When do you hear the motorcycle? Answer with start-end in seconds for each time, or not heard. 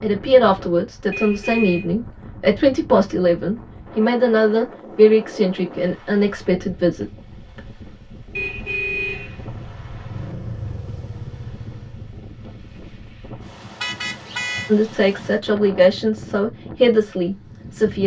9.2-12.2.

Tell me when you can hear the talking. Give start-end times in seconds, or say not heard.
0.0-7.0, 14.7-18.0.